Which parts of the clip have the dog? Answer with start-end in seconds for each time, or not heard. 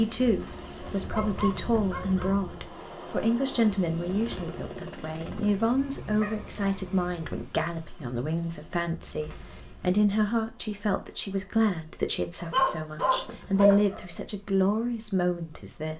0.2-2.4, 5.5-7.2, 12.4-14.2.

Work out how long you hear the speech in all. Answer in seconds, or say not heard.
16 s.